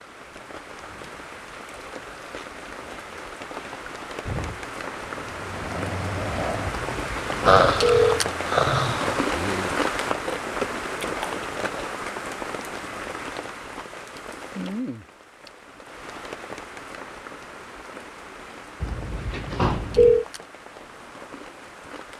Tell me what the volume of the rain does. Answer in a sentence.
The volume of the rain goes up, then down.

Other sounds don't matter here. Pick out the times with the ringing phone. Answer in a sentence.
You can hear the ringing phone from 6.7 to 8.2 s and from 18.8 to 20.2 s.